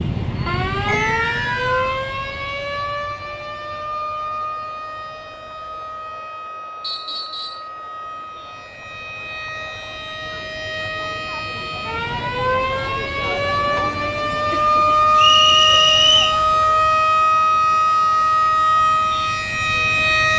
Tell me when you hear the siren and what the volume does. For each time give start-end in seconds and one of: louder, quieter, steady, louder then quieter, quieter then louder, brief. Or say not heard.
0.0-20.3 quieter then louder.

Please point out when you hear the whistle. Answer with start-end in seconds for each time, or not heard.
0.8-1.9, 6.8-7.7, 15.2-16.4.